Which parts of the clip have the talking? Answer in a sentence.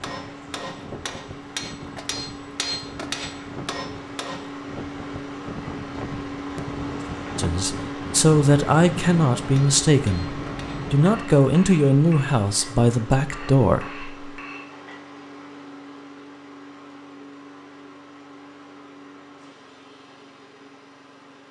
You can hear the talking from 7.3 to 14.1 s.